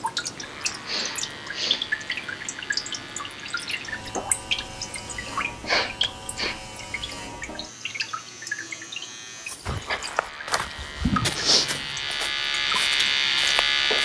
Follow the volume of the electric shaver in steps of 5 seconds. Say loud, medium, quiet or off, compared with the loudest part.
quiet, quiet, loud.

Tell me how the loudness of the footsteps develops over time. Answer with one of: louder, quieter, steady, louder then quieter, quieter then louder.
louder then quieter.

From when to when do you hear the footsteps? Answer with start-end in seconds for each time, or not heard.
9.4-14.0.